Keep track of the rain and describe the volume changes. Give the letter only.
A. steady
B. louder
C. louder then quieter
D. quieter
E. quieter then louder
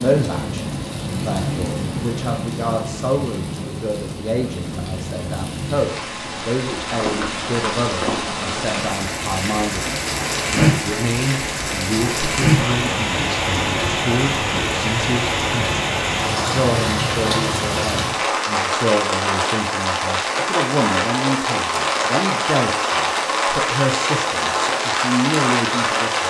B.